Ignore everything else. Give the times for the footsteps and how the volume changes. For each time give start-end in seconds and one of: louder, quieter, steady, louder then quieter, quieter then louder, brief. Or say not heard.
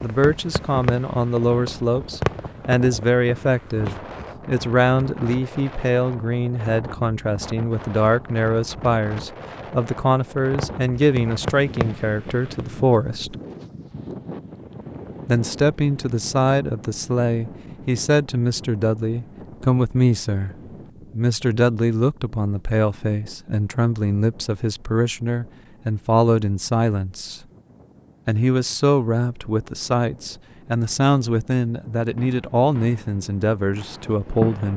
not heard.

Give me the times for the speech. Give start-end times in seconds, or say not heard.
0.0-13.3, 15.2-27.4, 28.2-34.7.